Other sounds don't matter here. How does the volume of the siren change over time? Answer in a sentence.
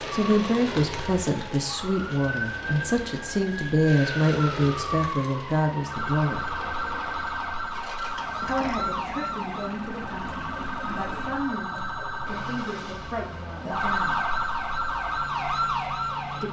The loudness of the siren goes up.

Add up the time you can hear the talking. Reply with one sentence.
The talking can be heard for 12 seconds in total.